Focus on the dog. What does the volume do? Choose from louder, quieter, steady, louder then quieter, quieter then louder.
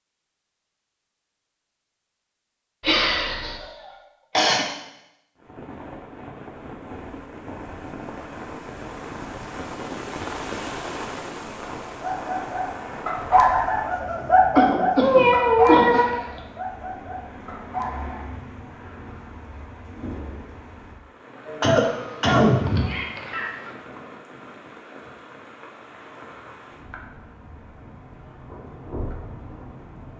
quieter.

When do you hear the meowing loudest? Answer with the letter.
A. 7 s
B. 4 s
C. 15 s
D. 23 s
C.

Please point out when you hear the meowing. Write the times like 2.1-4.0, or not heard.
2.8-3.5, 15.0-16.4, 21.9-23.8.